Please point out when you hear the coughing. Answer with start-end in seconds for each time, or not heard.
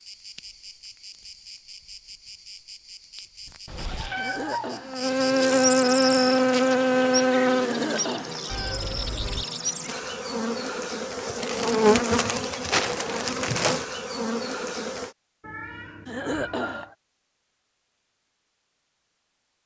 4.2-5.0, 7.5-8.4, 16.1-16.9.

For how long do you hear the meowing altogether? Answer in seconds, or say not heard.
4 s.